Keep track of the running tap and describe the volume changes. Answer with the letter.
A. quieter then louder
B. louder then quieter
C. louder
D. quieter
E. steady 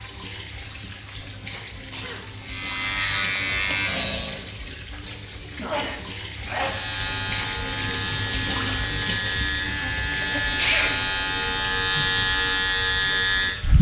B.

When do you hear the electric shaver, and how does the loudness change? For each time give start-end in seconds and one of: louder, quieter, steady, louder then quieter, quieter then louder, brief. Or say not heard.
2.4-4.5 brief
6.6-13.7 louder.